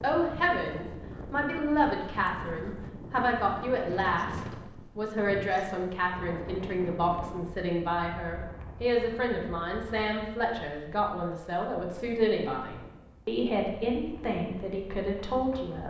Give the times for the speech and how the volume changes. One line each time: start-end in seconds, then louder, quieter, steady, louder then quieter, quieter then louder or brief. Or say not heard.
0.0-15.8 steady.